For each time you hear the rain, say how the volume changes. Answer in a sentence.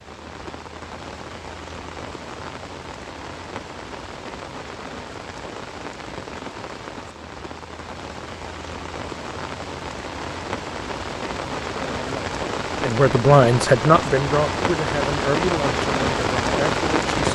The rain can be heard from 0.0 to 17.2 s, getting louder.